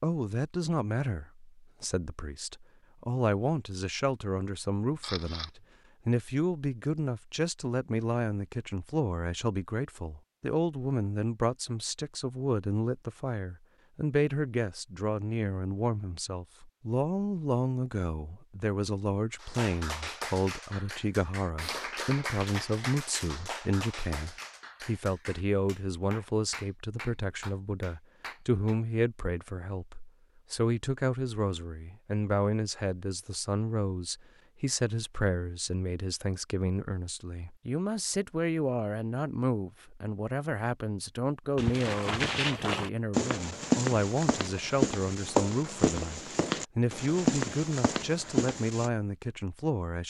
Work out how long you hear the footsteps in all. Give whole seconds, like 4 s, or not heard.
7 s.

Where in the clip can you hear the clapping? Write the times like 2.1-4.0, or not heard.
19.4-28.8.